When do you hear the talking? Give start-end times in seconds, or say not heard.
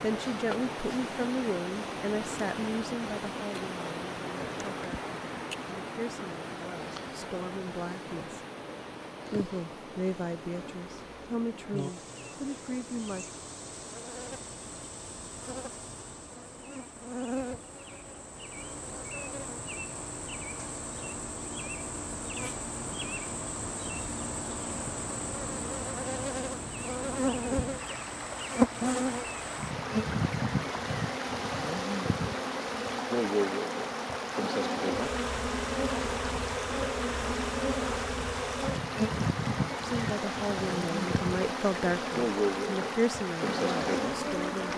0.0-8.4, 9.3-13.2, 39.8-44.7.